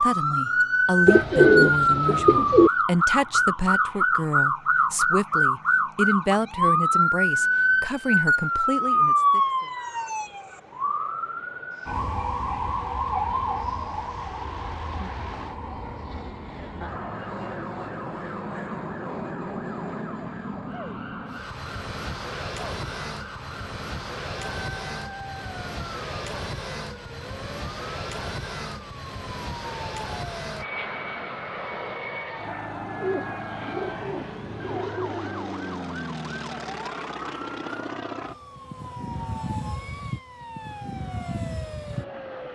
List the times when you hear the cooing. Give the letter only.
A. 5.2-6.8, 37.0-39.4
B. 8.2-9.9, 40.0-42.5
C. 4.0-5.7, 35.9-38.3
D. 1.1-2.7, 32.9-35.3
D.